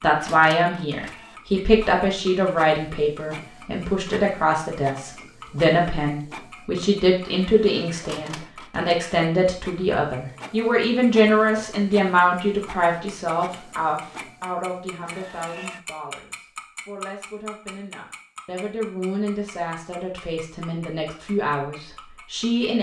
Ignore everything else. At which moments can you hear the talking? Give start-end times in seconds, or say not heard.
0.0-22.7.